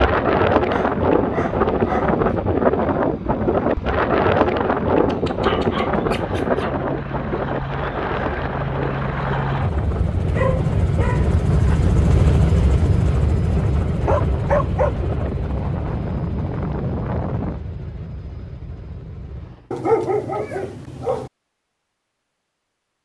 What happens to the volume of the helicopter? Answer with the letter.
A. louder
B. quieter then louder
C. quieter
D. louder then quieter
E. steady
D.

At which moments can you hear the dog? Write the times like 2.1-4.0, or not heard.
0.7-2.2, 5.0-6.8, 10.2-11.9, 14.1-14.9, 19.7-21.3.